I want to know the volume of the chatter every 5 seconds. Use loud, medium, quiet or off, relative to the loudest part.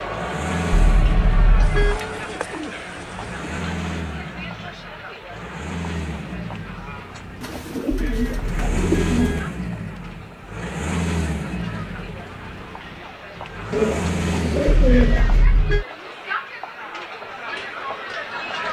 loud, medium, medium, loud.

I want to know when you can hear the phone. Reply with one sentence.
You can't hear the phone here.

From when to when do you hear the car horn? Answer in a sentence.
You can hear the car horn from 0.7 to 2.0 s, from 7.9 to 9.5 s and from 14.7 to 15.8 s.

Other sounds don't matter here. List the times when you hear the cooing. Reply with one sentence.
You can hear the cooing from 1.6 to 3.5 s, from 7.4 to 9.4 s and from 13.7 to 15.4 s.